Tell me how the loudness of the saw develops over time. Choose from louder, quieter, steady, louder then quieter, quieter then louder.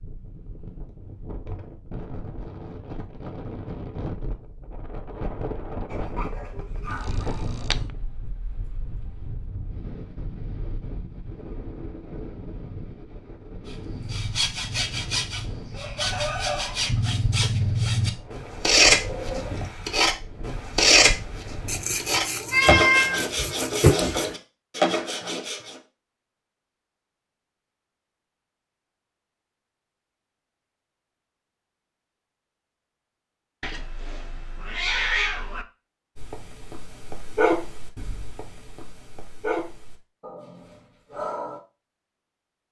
louder then quieter.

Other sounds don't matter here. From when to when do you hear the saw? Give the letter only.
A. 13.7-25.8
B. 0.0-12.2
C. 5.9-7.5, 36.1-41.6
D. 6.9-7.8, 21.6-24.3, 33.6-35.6
A.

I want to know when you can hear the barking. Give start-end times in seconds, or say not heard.
5.9-7.5, 36.1-41.6.